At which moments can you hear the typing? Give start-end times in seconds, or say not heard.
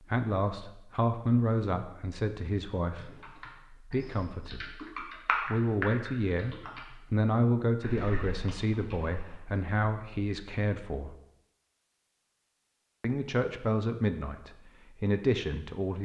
3.0-6.8, 7.8-9.3.